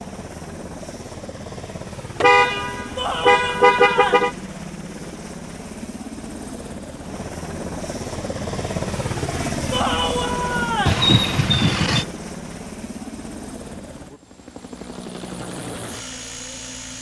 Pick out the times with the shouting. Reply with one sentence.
You can hear the shouting from 3.0 to 4.3 s and from 9.7 to 11.1 s.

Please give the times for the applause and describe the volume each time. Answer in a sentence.
You can't hear the applause here.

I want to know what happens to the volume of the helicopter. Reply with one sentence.
The volume of the helicopter goes up, then down.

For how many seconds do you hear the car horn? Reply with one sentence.
The car horn can be heard for 3 seconds in total.